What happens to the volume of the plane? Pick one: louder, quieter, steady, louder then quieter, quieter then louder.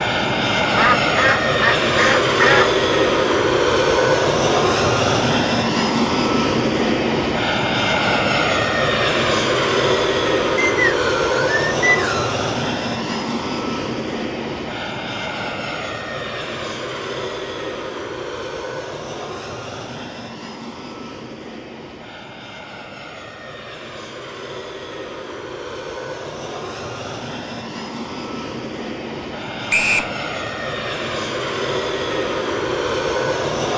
quieter then louder.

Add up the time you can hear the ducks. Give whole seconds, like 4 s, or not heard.
2 s.